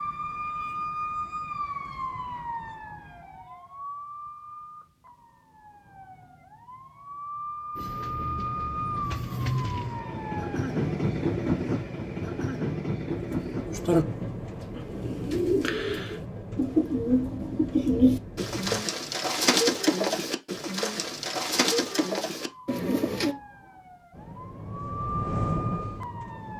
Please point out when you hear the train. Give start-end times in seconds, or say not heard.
7.8-18.9, 24.1-26.5.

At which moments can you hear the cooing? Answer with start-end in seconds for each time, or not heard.
13.2-23.4.